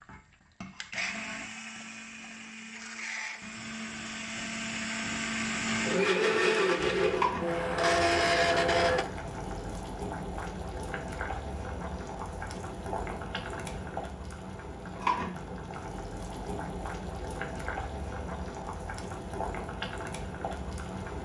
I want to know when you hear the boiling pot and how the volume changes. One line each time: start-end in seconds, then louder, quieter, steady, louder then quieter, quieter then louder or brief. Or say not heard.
6.9-21.1 steady.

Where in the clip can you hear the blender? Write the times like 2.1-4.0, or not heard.
0.0-9.1.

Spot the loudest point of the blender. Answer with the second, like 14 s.
8 s.